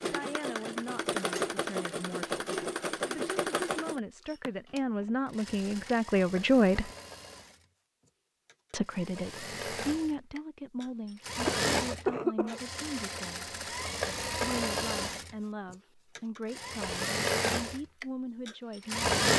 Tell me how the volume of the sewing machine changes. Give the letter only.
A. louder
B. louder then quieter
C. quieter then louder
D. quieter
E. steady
C.